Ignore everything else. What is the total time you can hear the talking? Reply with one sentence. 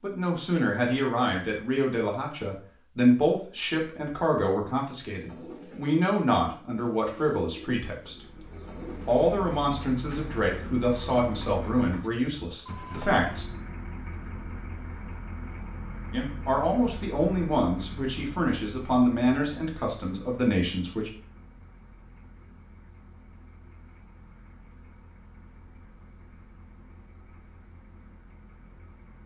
You can hear the talking for 18 seconds altogether.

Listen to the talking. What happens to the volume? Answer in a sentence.
The volume of the talking stays about the same.